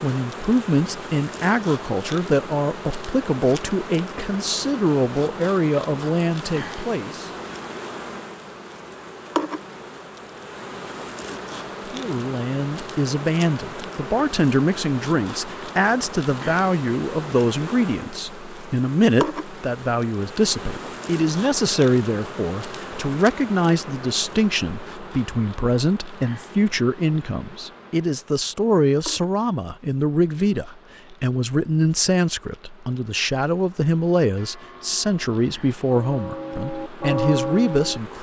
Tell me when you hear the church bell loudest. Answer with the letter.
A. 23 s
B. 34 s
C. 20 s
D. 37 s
D.